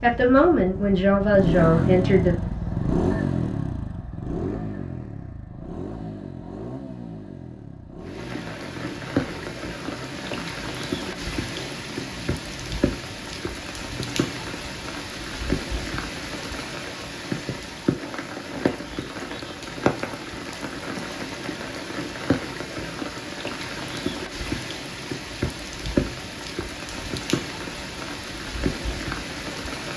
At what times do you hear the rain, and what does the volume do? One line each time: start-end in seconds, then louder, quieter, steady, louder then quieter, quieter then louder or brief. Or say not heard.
8.0-29.9 steady.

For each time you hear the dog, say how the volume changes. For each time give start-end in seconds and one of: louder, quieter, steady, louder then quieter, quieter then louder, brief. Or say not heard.
not heard.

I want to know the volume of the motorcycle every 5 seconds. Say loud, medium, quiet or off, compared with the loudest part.
loud, medium, quiet, off, off, off.